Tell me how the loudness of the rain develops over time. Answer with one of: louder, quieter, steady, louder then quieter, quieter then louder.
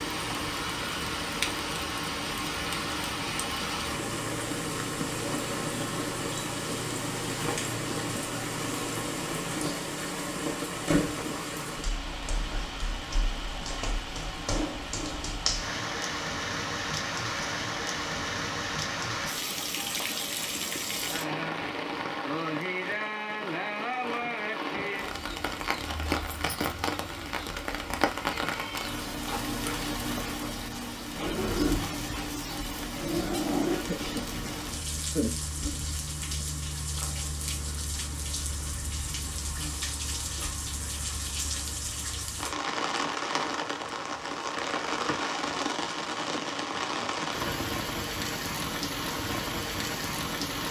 steady.